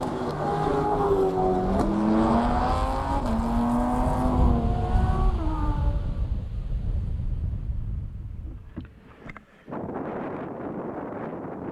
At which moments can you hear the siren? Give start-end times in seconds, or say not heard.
not heard.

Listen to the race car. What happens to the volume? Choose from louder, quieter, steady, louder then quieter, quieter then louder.
quieter.